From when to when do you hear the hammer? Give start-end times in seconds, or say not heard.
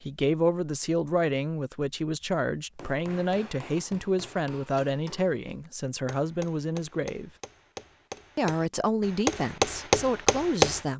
2.8-10.8.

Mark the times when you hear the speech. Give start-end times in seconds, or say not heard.
0.0-7.3, 8.3-10.9.